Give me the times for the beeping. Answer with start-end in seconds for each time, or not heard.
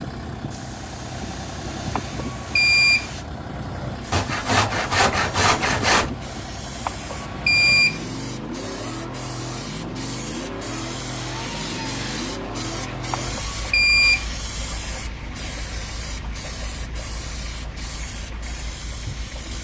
1.9-3.1, 6.8-8.1, 13.1-14.3.